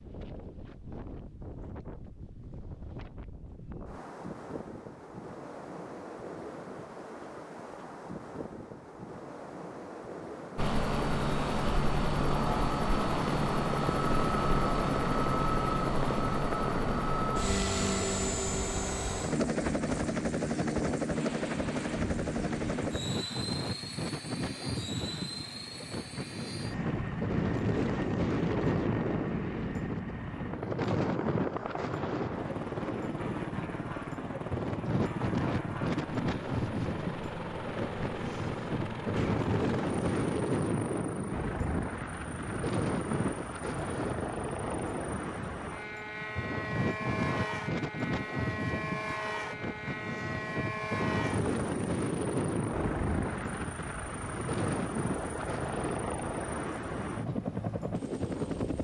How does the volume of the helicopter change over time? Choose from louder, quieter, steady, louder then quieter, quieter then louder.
quieter.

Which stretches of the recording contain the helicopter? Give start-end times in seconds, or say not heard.
10.6-58.7.